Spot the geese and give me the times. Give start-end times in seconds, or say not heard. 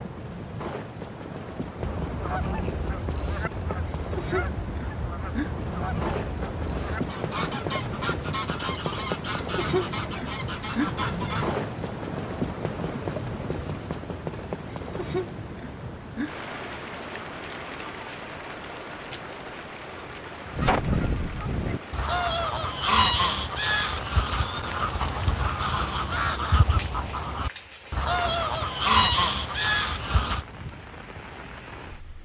1.8-11.6, 20.5-30.4.